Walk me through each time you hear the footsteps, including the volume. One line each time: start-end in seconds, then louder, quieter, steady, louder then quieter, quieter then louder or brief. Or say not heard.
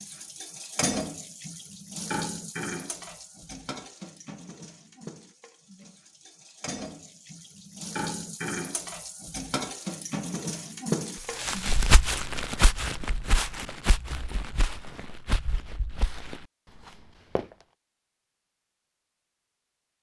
11.4-17.6 quieter.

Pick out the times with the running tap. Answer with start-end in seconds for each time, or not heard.
0.0-11.8.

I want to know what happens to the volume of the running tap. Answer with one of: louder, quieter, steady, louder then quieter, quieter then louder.
quieter then louder.